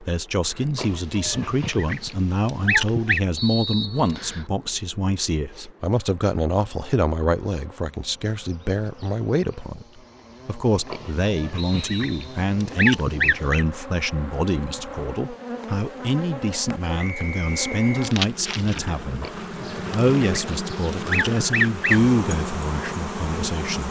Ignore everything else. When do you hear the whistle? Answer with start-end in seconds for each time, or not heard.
3.4-4.5, 11.6-12.3, 16.9-18.1.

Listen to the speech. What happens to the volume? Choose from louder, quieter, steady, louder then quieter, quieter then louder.
steady.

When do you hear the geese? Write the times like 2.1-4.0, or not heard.
0.8-3.2, 10.8-13.7, 19.2-22.0.